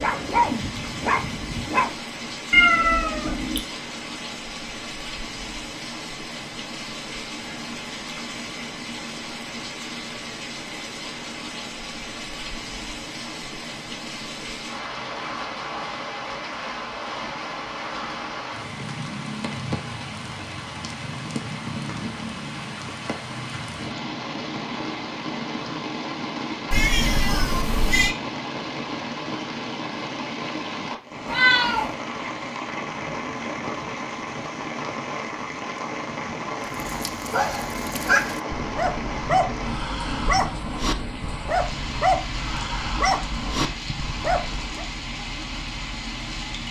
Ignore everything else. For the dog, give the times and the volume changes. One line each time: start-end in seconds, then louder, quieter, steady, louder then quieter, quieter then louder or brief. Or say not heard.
0.0-1.9 brief
36.7-44.9 steady.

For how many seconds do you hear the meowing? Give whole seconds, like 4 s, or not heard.
3 s.